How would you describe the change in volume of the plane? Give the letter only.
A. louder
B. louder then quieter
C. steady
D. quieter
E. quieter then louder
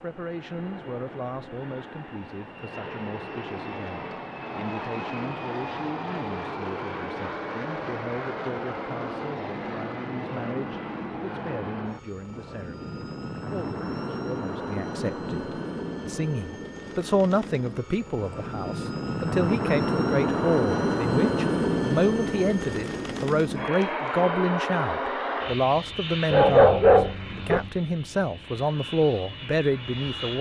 B.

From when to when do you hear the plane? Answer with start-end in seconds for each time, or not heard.
0.0-30.3.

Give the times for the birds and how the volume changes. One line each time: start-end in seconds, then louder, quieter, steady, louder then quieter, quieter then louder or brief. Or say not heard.
not heard.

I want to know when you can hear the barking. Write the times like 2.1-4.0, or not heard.
26.3-27.7.